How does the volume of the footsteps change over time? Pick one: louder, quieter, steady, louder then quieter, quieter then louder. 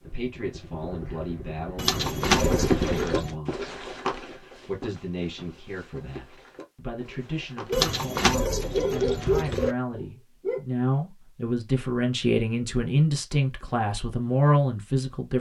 quieter.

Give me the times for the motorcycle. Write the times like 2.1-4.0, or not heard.
0.0-3.1.